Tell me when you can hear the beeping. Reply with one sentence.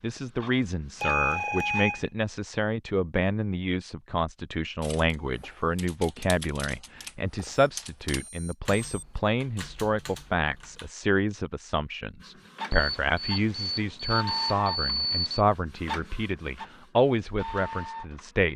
You can hear the beeping from 1.0 to 2.0 s, from 7.7 to 9.1 s and from 12.7 to 15.4 s.